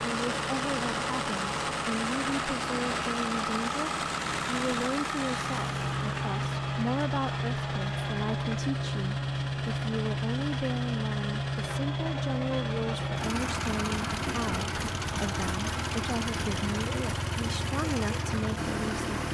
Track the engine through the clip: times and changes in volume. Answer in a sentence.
The engine can be heard from 0.0 to 19.2 s, at a steady volume.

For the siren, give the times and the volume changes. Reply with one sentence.
The siren can't be heard in this clip.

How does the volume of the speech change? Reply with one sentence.
The loudness of the speech stays about the same.